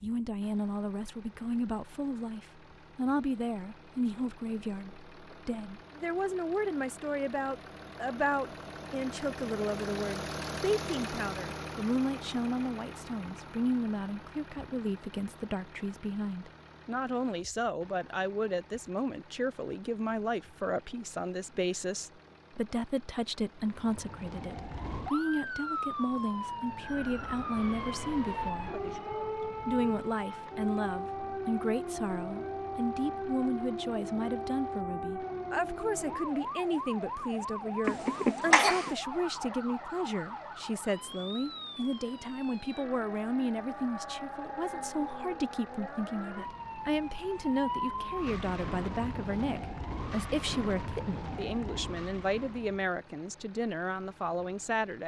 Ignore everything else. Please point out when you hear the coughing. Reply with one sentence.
The coughing can be heard from 37.9 to 39.0 s.